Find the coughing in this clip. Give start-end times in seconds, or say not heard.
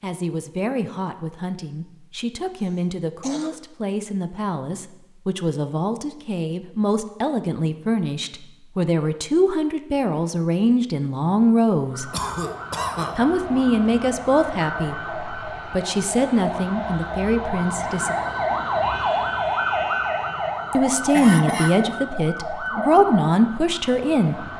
2.6-3.6, 12.1-13.2, 20.7-21.8.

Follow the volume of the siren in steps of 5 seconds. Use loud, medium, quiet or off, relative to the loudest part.
off, off, medium, loud, loud.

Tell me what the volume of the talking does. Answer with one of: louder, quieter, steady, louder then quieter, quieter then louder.
louder.